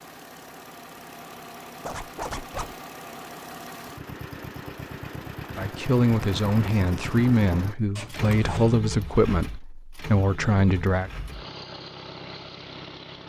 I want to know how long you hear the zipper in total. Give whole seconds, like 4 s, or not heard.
2 s.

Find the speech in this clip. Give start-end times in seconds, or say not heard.
5.5-11.1.